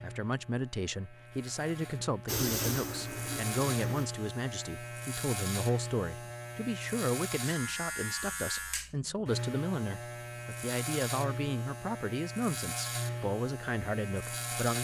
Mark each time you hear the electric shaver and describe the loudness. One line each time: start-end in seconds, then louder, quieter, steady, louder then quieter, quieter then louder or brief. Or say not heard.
0.0-14.8 louder.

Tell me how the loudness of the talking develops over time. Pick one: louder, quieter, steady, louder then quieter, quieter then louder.
steady.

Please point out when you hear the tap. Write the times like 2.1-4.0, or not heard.
2.2-4.1.